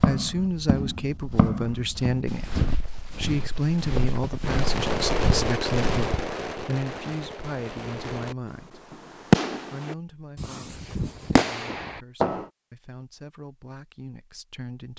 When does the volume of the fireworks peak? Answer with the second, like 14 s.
9 s.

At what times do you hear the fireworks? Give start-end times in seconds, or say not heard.
4.4-12.5.